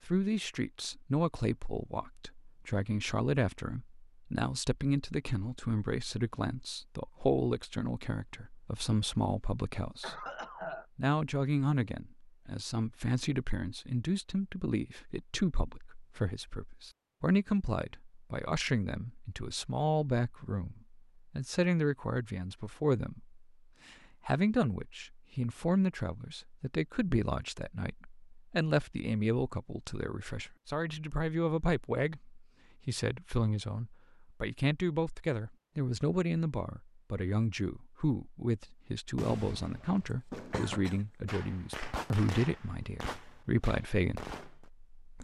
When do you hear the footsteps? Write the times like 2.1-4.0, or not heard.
not heard.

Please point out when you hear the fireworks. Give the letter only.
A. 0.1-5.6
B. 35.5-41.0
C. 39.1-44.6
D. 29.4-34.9
C.